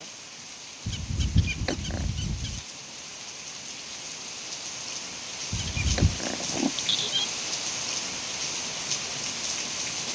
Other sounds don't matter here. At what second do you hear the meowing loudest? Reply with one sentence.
The loudest moment of the meowing is at 7 seconds.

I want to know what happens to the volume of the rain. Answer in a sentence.
The loudness of the rain goes up.